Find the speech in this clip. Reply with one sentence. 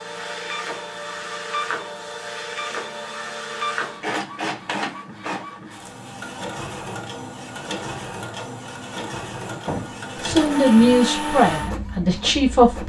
The speech can be heard from 10.2 to 12.8 s.